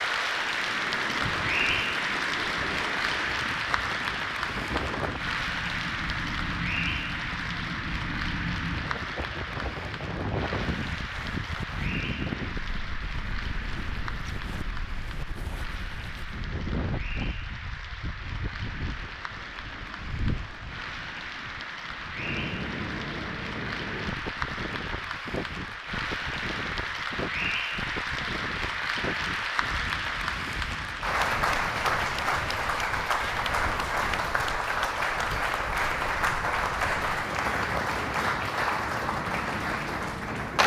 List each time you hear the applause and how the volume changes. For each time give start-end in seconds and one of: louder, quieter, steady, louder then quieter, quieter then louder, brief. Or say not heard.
0.0-40.6 quieter then louder.